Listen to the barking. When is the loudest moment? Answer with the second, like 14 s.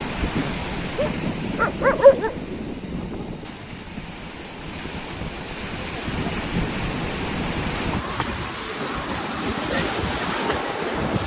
2 s.